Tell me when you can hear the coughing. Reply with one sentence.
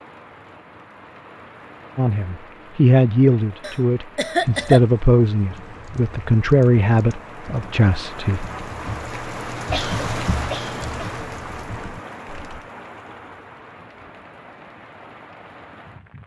The coughing can be heard from 3.6 to 4.8 s and from 9.7 to 11.1 s.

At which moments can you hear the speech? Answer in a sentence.
You can hear the speech from 1.9 to 8.4 s.